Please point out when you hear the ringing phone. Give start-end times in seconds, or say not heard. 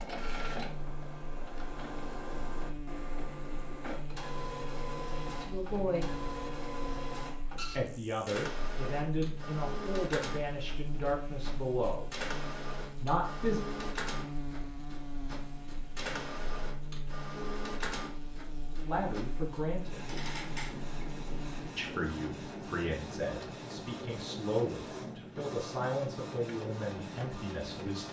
not heard.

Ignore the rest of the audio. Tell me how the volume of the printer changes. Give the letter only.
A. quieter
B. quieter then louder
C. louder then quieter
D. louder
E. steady
E.